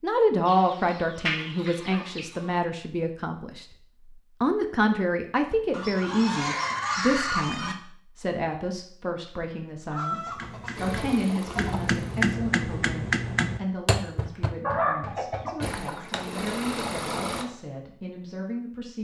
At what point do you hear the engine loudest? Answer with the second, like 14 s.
17 s.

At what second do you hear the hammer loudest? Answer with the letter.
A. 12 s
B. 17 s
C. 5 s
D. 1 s
A.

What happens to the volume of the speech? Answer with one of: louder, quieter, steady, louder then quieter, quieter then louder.
quieter.